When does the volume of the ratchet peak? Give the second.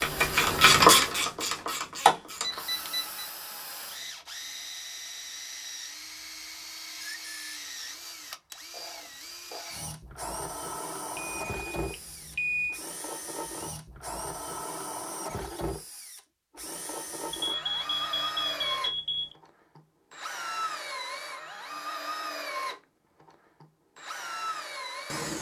1 s.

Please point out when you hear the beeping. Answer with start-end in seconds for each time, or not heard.
2.4-3.2, 11.2-12.8, 17.3-19.4.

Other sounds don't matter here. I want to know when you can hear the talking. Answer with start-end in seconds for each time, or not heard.
not heard.